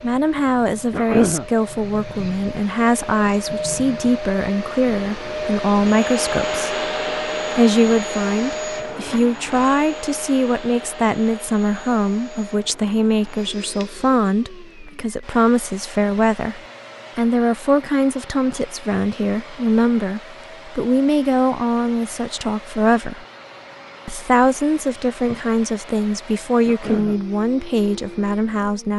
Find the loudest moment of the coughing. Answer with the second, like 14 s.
1 s.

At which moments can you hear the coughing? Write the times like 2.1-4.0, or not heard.
0.9-1.4, 26.6-27.2.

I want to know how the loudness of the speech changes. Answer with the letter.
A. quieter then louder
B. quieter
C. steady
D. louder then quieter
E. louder
C.